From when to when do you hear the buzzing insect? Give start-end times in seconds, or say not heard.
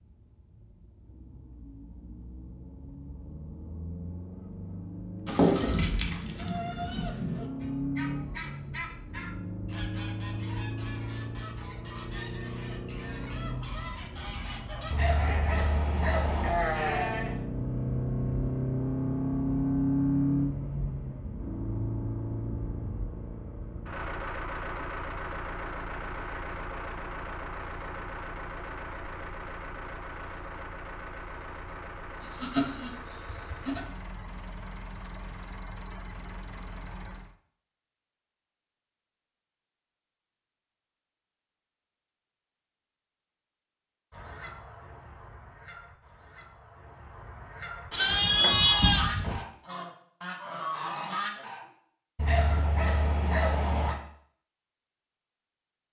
not heard.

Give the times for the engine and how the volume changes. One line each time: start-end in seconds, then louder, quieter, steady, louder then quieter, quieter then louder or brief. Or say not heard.
0.0-37.4 louder then quieter.